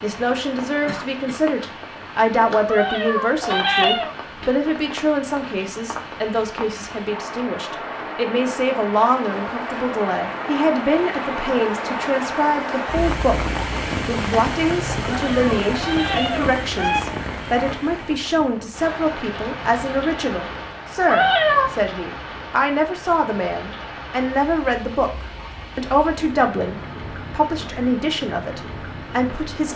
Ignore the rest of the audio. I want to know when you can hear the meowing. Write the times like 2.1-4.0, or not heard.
2.6-4.2, 15.0-17.0, 21.1-21.7.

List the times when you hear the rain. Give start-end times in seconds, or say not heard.
0.0-29.7.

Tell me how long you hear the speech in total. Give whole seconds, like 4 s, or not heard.
30 s.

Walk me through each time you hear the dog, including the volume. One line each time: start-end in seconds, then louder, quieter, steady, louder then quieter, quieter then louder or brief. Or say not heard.
not heard.